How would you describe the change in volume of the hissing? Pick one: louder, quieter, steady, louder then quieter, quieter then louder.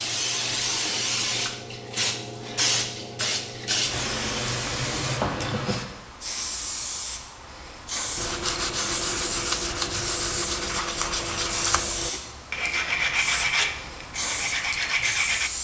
quieter.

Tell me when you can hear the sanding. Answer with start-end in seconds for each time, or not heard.
8.2-15.5.